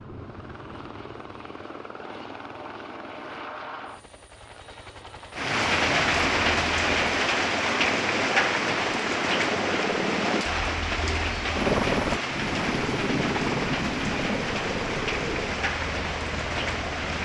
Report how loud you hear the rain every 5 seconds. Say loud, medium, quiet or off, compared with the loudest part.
off, loud, medium, medium.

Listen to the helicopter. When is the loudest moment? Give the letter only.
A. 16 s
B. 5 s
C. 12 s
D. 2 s
C.